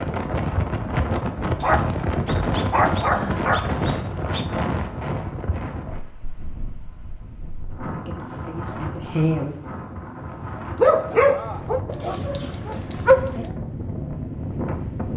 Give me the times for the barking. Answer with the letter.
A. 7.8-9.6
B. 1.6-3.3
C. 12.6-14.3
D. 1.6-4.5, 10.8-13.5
D.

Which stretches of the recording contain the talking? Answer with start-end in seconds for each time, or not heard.
7.8-9.6.